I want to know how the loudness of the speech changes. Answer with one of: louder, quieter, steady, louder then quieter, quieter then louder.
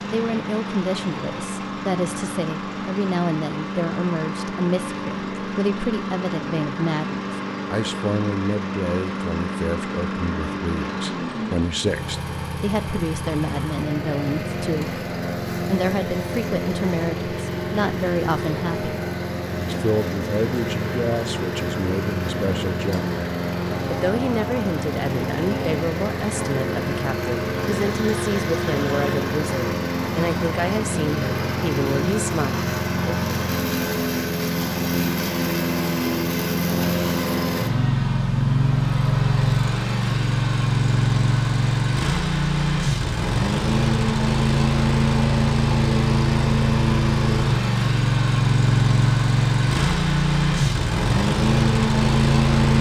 steady.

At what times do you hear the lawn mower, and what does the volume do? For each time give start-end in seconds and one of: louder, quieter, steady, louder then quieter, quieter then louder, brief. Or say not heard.
0.0-52.7 louder.